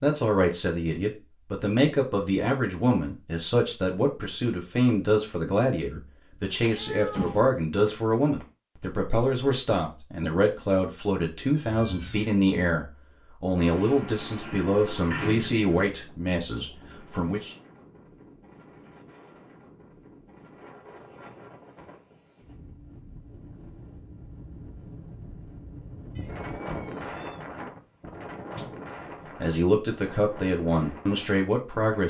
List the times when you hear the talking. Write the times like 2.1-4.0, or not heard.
0.0-17.6, 29.4-32.0.